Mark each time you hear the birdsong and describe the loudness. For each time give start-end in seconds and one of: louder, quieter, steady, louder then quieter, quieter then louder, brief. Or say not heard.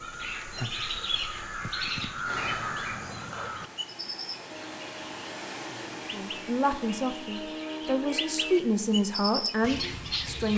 0.0-10.5 quieter then louder.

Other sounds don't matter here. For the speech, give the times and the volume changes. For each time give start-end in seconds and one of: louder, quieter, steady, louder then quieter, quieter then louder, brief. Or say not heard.
6.0-10.5 quieter then louder.